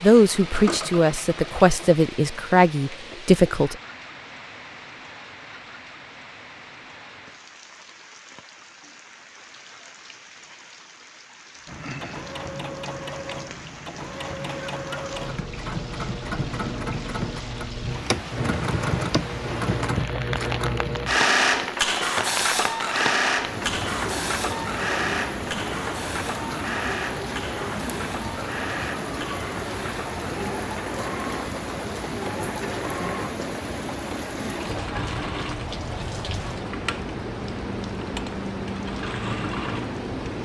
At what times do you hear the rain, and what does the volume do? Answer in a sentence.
The rain can be heard from 0.0 to 40.4 s, getting louder.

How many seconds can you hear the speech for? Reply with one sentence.
The speech can be heard for 4 seconds in total.